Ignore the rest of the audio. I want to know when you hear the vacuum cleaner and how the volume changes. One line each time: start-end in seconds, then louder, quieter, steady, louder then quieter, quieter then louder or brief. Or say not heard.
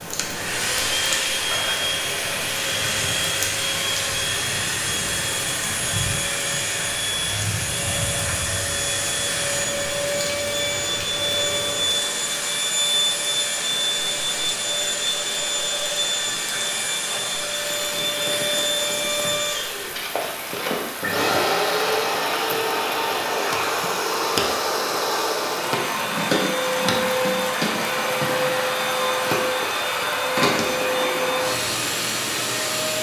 0.1-32.9 steady.